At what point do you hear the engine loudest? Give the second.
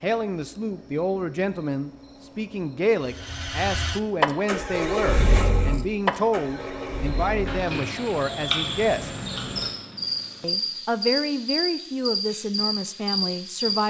5 s.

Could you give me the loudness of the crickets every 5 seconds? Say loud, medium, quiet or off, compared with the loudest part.
quiet, loud, loud.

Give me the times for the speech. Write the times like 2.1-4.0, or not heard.
0.0-9.1, 10.4-13.8.